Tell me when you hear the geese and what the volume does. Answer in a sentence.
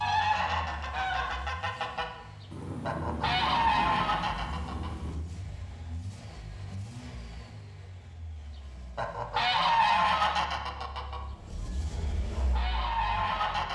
The geese can be heard briefly from 0.0 to 2.0 s; briefly from 2.9 to 5.0 s; and from 8.9 to 13.6 s, getting quieter then louder.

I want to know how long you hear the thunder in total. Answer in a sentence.
The thunder can be heard for 3 seconds in total.